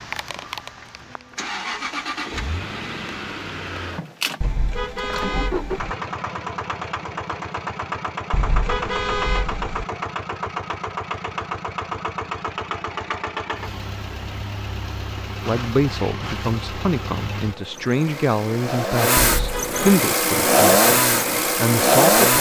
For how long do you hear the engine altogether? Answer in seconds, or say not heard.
22 s.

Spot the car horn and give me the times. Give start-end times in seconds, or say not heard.
4.4-6.0, 8.3-9.8, 19.2-19.9.